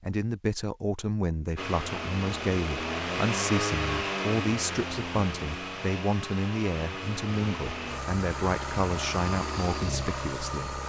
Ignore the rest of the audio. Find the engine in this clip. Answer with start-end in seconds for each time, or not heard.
1.6-10.8.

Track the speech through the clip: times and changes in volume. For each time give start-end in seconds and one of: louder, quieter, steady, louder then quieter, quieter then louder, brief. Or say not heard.
0.0-10.8 steady.